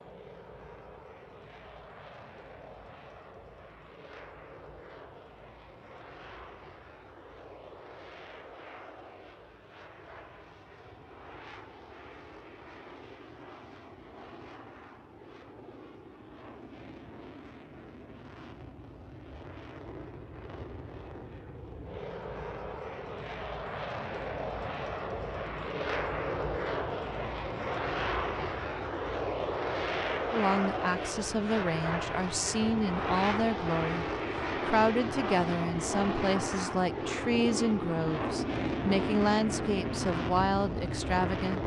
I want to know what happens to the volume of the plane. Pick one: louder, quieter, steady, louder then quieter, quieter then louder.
louder.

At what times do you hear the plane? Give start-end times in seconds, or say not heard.
0.0-41.6.